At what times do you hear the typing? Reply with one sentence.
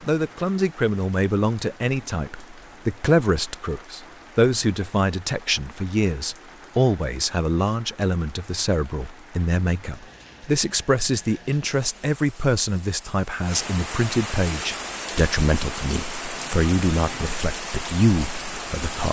The typing can't be heard in this clip.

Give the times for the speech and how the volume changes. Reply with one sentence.
The speech can be heard from 0.1 to 19.0 s, at a steady volume.